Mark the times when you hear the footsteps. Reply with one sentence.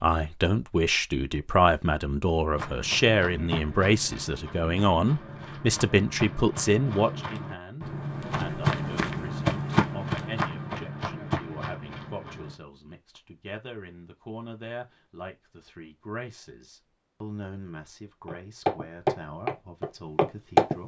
You can hear the footsteps from 2.5 to 12.6 s and from 18.2 to 20.8 s.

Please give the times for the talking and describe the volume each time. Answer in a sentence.
You can hear the talking from 0.0 to 20.8 s, getting quieter.